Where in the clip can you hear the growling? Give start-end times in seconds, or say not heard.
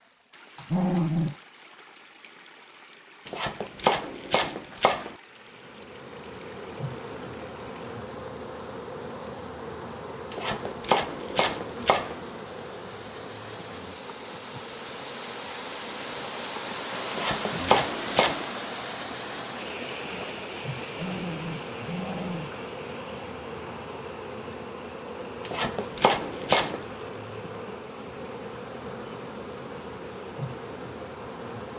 0.6-1.4, 20.9-22.5.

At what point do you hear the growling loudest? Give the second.
1 s.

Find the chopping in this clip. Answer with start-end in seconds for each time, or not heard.
3.2-5.2, 10.3-12.2, 17.1-18.4, 25.4-26.9.